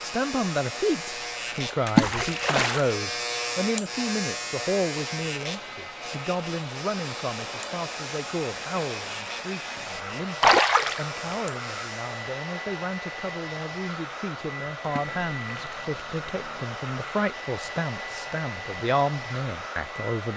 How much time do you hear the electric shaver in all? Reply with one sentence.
You can hear the electric shaver for 12 seconds altogether.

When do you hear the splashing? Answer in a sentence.
The splashing can be heard from 1.9 to 2.9 s, from 10.4 to 11.3 s and from 14.8 to 16.6 s.